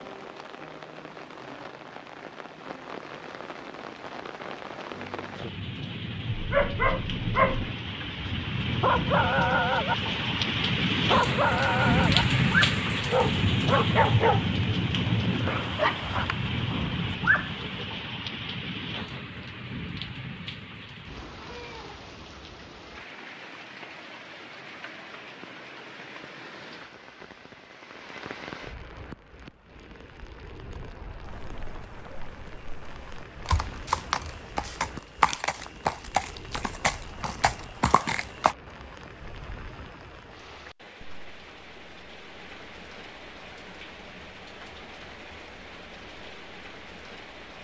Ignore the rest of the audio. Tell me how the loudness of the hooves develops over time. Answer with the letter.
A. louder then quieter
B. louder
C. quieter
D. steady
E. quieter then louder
B.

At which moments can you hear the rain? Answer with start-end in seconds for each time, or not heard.
0.0-47.5.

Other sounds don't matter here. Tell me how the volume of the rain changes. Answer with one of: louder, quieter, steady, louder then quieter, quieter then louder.
louder then quieter.